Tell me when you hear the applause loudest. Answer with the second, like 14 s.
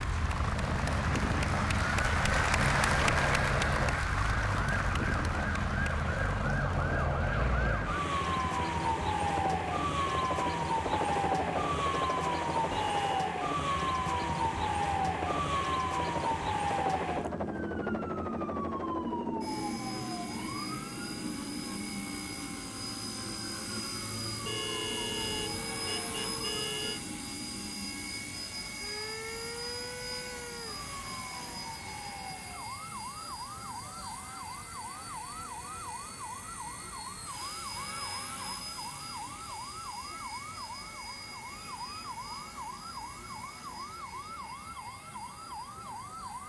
3 s.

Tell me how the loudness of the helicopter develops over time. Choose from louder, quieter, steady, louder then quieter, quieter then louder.
quieter.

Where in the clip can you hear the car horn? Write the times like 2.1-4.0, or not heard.
12.7-13.3, 24.4-27.0.